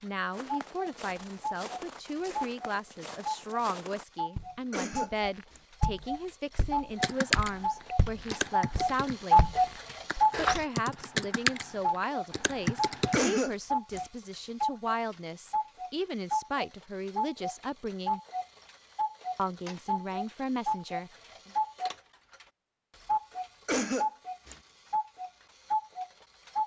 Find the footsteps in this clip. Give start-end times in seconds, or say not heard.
0.3-10.7.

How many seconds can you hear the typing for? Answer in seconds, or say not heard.
6 s.